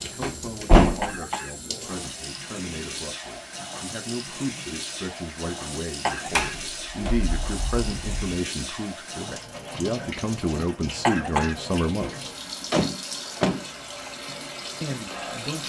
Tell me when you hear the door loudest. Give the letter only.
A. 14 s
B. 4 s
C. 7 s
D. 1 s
D.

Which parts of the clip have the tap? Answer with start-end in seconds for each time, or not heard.
0.0-15.6.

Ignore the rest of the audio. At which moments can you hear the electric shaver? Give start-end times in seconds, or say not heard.
not heard.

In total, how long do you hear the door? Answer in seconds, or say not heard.
4 s.